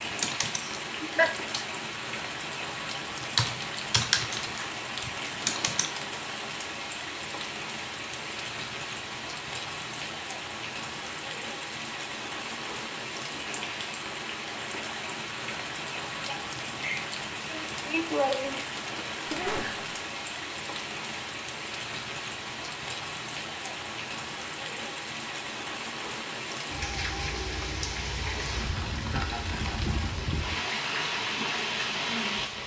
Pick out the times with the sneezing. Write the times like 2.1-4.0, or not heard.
19.2-20.0.